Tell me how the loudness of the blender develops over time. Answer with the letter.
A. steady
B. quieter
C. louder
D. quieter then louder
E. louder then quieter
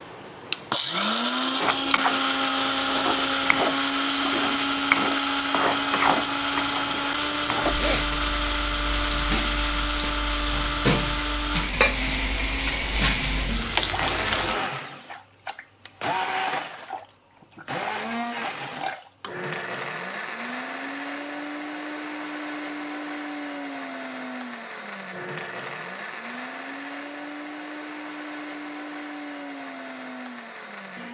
B.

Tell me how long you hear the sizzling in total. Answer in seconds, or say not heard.
13 s.